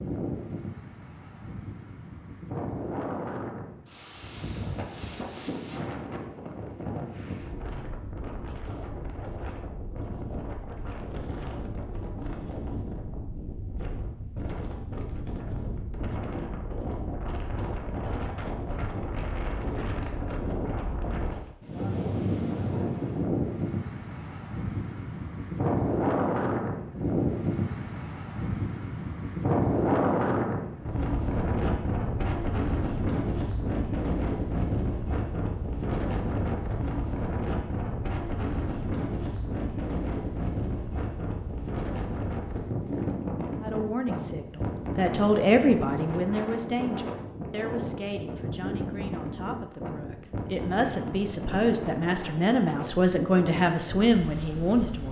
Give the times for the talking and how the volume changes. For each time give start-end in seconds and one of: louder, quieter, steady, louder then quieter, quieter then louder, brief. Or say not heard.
43.6-55.0 quieter then louder.